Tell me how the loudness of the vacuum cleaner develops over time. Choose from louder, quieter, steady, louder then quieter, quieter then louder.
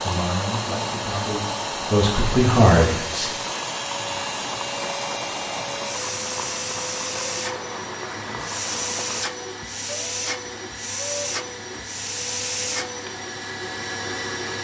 steady.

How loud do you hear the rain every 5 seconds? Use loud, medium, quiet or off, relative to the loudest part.
loud, loud, off.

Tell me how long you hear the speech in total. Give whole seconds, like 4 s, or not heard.
3 s.